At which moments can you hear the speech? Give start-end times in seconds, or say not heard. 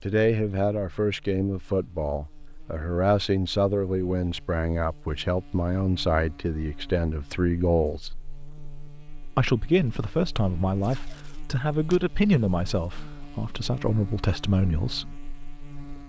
0.0-8.1, 9.3-15.2.